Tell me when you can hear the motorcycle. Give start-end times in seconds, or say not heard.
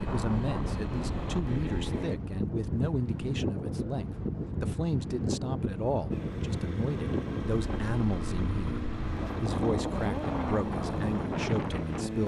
0.0-2.1, 6.1-12.2.